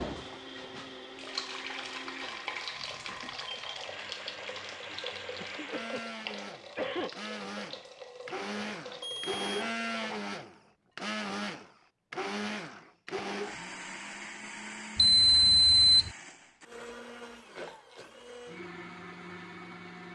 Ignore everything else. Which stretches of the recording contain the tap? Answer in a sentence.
The tap can be heard from 0.0 to 10.1 s.